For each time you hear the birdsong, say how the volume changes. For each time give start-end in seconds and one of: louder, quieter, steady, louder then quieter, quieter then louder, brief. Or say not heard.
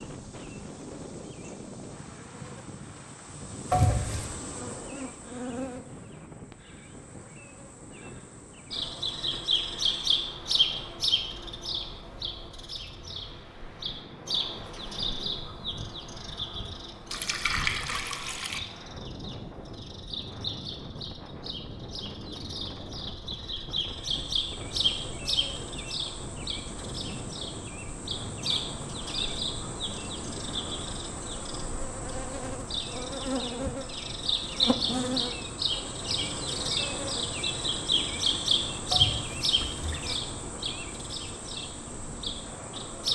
8.7-43.1 quieter then louder.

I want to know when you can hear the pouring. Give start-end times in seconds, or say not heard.
3.7-4.3, 17.1-18.6, 38.9-40.0.